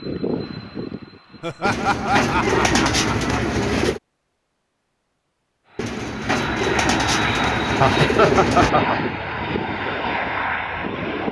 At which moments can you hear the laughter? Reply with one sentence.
You can hear the laughter from 1.4 to 3.3 s and from 7.8 to 8.9 s.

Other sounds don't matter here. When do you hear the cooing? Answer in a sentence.
The cooing can be heard from 1.6 to 4.0 s and from 5.8 to 8.7 s.